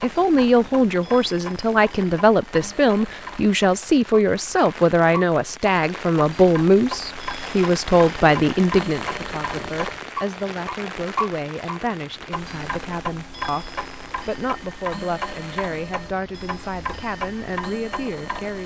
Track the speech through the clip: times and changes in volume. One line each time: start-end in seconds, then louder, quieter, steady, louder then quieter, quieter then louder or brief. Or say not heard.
0.0-18.6 quieter.